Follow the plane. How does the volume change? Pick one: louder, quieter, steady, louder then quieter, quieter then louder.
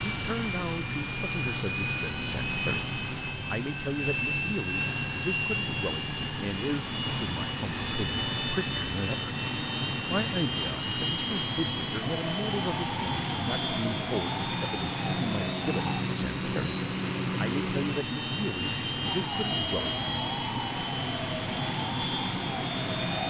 steady.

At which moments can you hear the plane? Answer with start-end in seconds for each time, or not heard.
0.0-23.2.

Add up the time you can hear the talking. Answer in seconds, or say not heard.
19 s.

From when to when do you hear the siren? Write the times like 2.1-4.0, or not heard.
12.0-16.0, 19.1-23.2.